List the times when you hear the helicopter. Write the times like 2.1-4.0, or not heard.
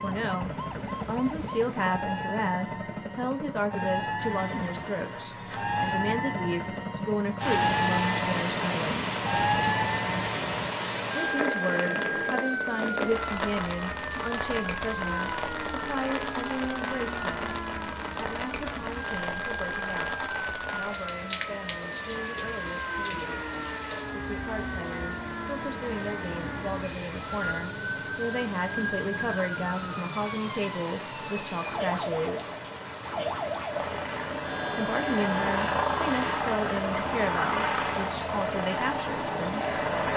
0.0-12.3, 33.6-40.1.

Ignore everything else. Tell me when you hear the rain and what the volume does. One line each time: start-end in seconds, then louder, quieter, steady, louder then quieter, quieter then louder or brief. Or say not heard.
7.3-40.1 quieter.